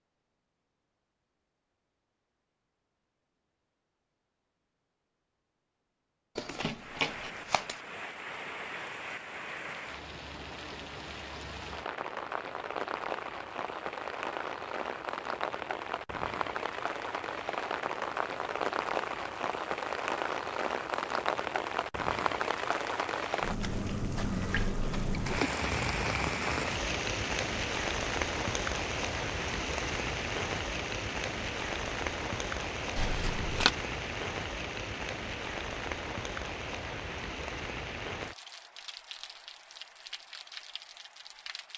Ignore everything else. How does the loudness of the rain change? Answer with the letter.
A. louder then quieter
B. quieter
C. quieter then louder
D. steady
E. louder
A.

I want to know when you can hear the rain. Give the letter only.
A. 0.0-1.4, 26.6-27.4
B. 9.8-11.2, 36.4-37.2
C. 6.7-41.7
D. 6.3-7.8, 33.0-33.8
C.